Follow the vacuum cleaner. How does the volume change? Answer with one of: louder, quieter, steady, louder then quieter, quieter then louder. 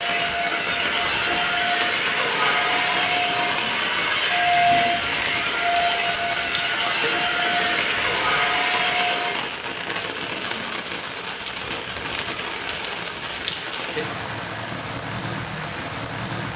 steady.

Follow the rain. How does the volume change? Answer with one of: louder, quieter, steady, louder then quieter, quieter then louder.
steady.